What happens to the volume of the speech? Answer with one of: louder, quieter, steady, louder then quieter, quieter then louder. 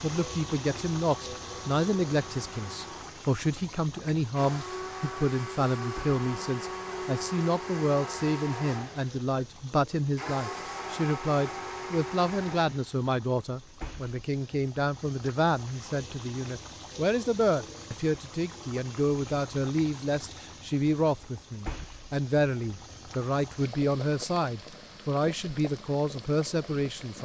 steady.